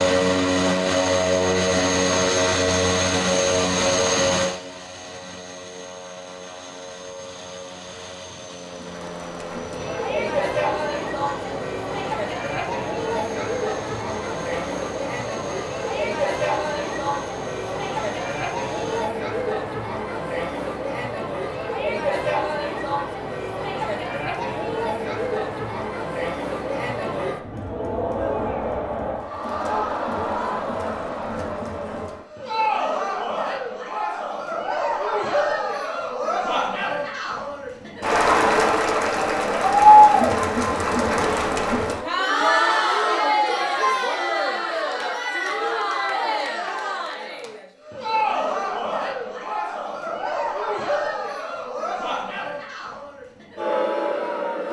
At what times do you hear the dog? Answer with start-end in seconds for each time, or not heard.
not heard.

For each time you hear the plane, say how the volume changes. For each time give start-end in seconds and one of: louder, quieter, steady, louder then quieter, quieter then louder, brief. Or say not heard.
0.0-19.1 quieter.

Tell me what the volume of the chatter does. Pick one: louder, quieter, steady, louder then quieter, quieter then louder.
louder then quieter.